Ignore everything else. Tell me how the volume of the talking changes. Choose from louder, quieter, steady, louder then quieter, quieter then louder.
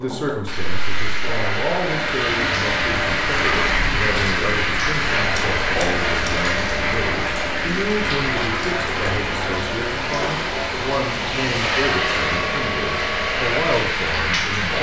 steady.